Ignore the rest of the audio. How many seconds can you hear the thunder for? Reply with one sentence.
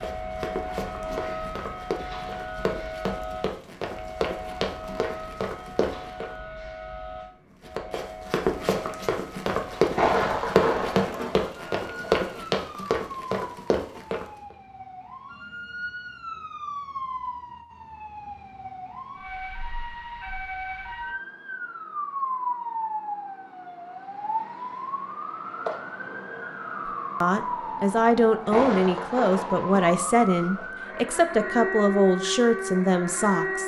You can hear the thunder for 5 seconds altogether.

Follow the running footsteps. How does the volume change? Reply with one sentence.
The loudness of the running footsteps goes up.